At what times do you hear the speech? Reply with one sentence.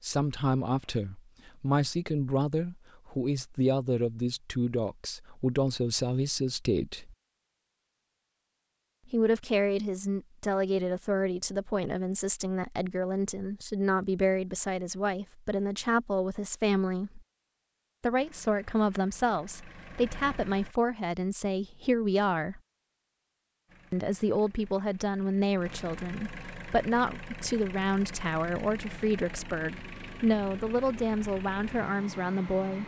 The speech can be heard from 0.0 to 7.2 s, from 9.1 to 17.2 s, from 18.0 to 22.6 s and from 23.9 to 32.8 s.